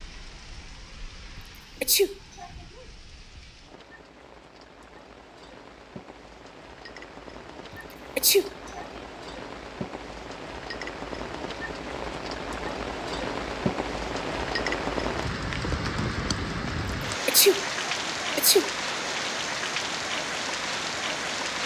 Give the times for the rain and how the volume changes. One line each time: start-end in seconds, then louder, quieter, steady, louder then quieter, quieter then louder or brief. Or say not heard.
0.0-21.6 louder.